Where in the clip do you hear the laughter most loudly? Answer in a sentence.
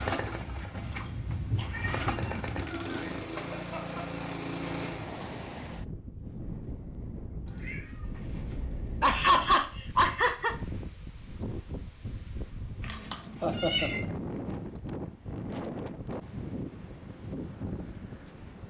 The volume of the laughter peaks at 9 seconds.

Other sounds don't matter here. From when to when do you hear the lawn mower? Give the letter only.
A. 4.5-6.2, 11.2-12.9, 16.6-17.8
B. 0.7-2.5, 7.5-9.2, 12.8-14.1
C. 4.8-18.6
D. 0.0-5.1
D.